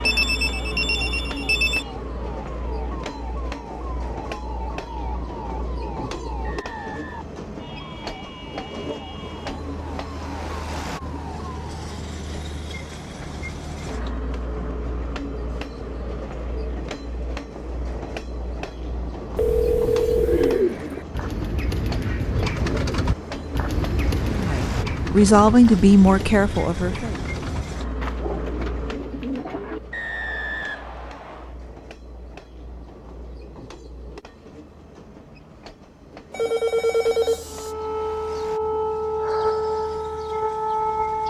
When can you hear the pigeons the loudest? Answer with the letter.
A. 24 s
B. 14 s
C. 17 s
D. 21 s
D.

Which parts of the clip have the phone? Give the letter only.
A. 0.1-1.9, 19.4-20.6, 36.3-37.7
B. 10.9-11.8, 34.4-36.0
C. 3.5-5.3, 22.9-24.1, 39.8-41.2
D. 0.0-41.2
A.